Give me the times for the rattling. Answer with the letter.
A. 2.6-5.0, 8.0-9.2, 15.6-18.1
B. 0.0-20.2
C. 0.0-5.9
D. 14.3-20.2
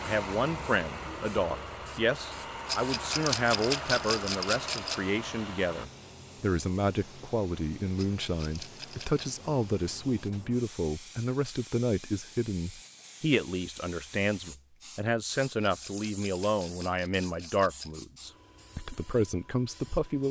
A.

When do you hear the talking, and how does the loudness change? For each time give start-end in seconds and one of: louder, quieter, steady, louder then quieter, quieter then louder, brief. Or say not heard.
0.0-20.2 steady.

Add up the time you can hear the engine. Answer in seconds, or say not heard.
6 s.